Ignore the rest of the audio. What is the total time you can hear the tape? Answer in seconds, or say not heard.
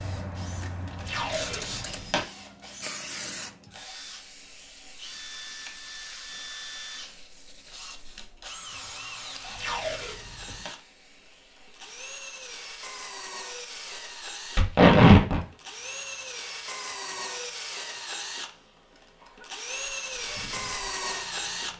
3 s.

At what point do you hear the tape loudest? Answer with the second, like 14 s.
15 s.